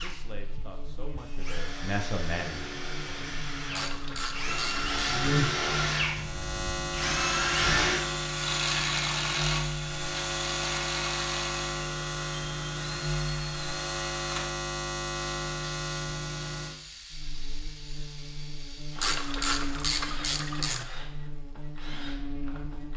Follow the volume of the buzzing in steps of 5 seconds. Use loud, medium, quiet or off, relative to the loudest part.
quiet, loud, loud, medium, medium.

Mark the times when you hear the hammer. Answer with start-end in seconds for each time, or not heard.
not heard.